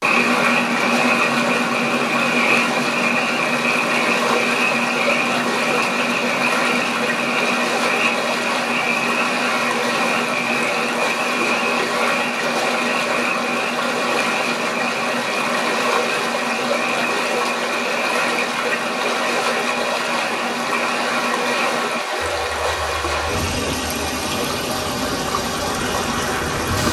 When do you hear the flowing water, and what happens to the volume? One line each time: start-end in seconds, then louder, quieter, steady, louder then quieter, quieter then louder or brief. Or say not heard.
0.0-26.8 steady.